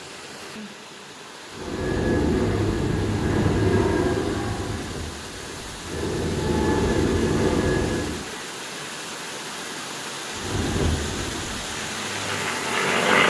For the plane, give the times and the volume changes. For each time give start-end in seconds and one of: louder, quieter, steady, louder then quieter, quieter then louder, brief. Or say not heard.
1.5-8.2 quieter then louder
10.3-13.2 brief.